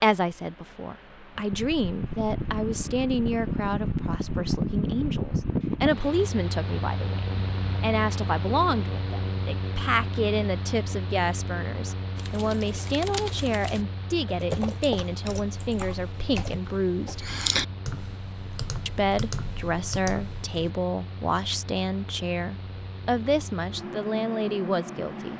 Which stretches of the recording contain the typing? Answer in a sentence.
You can hear the typing from 12.2 to 20.7 s.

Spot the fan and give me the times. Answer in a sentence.
The fan can be heard from 0.1 to 25.3 s.